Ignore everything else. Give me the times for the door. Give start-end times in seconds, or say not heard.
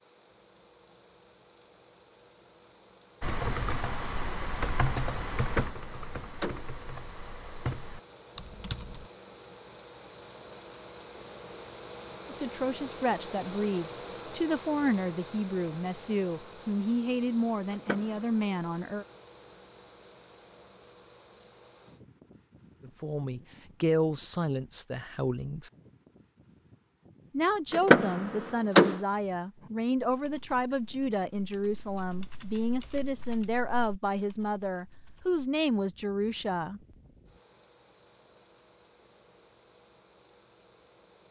5.3-6.8, 17.7-18.3, 27.7-28.9.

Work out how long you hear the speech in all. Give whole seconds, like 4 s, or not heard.
19 s.